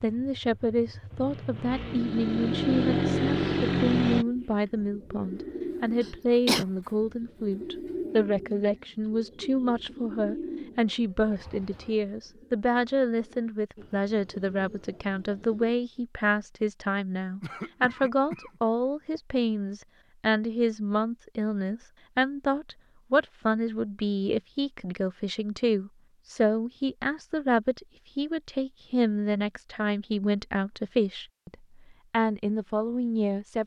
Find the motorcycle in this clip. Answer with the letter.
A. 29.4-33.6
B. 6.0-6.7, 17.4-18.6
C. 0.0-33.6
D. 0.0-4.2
D.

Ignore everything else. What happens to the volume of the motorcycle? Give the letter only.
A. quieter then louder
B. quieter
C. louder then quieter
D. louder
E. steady
D.